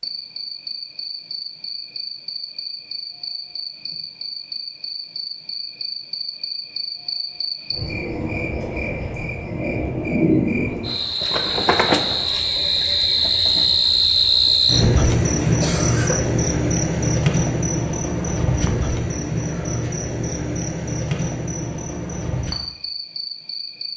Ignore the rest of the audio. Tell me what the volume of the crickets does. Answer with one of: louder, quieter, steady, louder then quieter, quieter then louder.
louder then quieter.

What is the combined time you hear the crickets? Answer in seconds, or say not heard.
24 s.